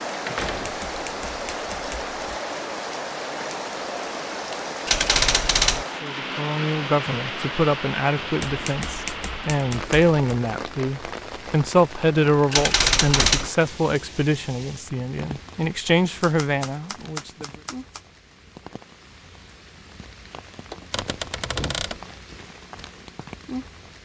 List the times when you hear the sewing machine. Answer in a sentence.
You can't hear the sewing machine here.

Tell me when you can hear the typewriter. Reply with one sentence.
The typewriter can be heard from 0.6 to 2.1 s, from 4.8 to 5.8 s, from 8.4 to 10.2 s, from 12.5 to 13.5 s, from 16.2 to 18.0 s and from 20.9 to 21.9 s.